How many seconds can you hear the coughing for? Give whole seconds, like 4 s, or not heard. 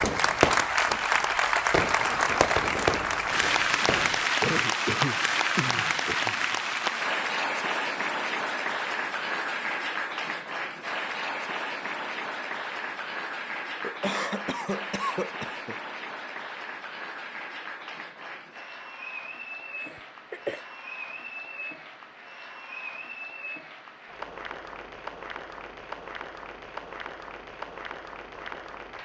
5 s.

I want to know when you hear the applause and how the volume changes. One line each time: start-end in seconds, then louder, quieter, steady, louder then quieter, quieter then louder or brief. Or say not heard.
0.0-28.9 quieter.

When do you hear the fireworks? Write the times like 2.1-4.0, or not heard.
0.0-4.2.